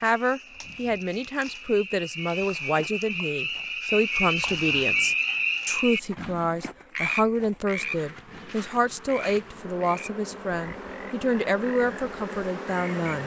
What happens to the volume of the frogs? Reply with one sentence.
The volume of the frogs goes up, then down.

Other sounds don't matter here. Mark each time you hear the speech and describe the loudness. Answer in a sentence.
You can hear the speech from 0.0 to 13.2 s, at a steady volume.